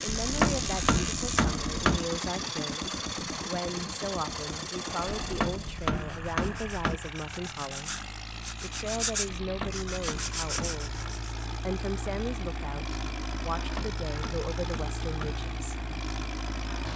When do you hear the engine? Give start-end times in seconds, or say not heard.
0.0-16.9.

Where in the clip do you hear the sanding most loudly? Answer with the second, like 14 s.
9 s.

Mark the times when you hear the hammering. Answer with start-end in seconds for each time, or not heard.
0.1-2.0, 5.0-7.0, 9.4-11.1, 13.6-15.3.